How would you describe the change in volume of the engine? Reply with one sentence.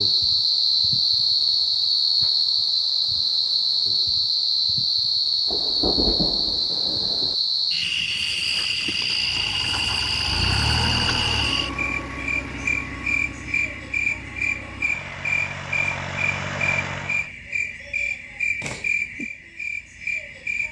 The volume of the engine goes down, then up.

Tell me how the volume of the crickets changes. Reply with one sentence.
The volume of the crickets goes down.